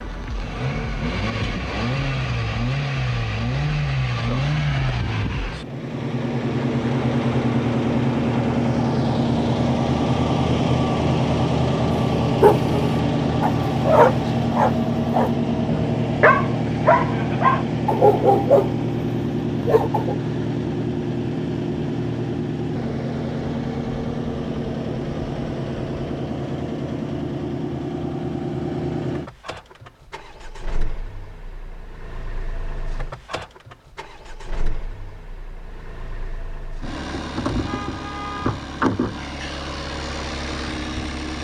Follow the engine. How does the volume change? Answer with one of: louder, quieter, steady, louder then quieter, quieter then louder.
quieter.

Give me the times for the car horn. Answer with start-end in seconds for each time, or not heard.
37.6-38.6.